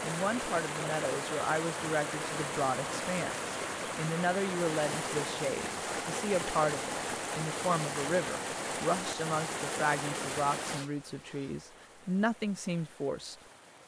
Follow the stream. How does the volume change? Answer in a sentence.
The loudness of the stream goes down.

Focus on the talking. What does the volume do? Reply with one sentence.
The volume of the talking stays about the same.